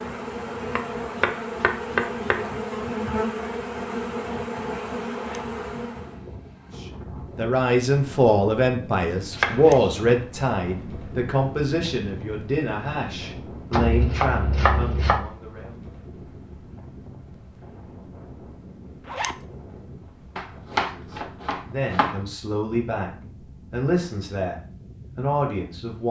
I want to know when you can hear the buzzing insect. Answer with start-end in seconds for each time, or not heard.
0.0-6.2.